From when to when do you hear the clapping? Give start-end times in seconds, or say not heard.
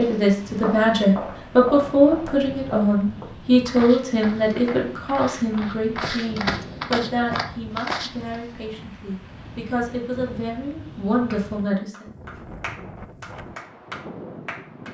11.3-14.8.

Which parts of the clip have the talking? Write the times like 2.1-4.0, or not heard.
0.0-12.1.